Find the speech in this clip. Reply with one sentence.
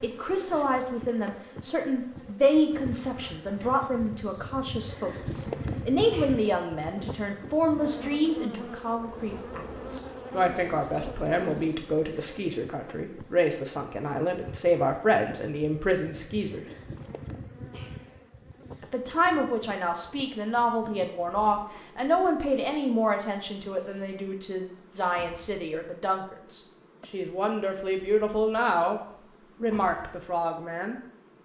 The speech can be heard from 0.0 to 16.6 s and from 18.8 to 30.9 s.